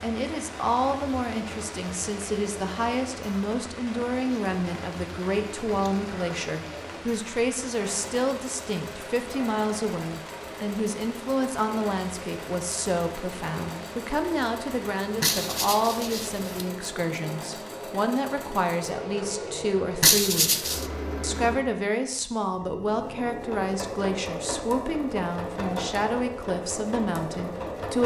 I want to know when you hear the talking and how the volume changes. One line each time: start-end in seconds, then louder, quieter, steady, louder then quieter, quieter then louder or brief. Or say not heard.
0.0-28.0 steady.